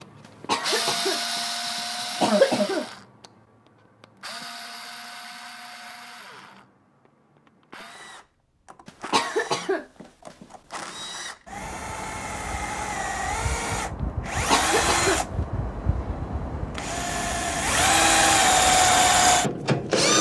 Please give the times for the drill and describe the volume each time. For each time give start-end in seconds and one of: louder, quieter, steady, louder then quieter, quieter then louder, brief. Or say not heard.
0.0-20.1 quieter then louder.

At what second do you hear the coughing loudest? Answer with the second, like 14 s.
2 s.